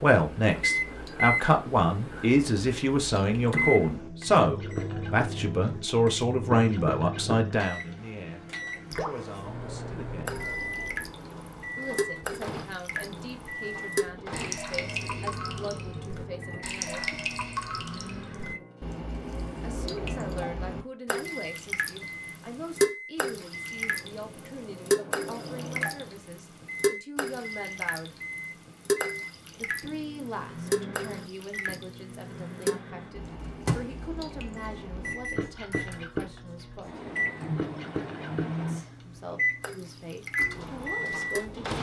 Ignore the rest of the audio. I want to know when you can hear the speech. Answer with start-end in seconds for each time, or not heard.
0.0-10.4, 11.8-17.1, 19.6-28.1, 29.6-37.0, 39.0-41.6.